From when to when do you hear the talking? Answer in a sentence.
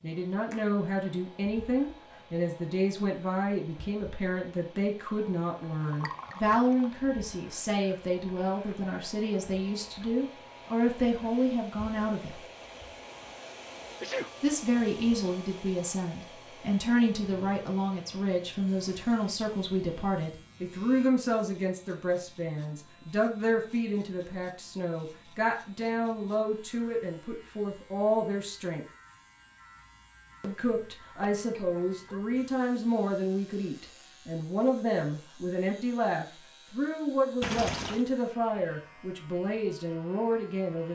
The talking can be heard from 0.0 to 12.4 s, from 14.4 to 28.9 s and from 30.4 to 40.9 s.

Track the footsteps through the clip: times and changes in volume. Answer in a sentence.
The footsteps can't be heard in this clip.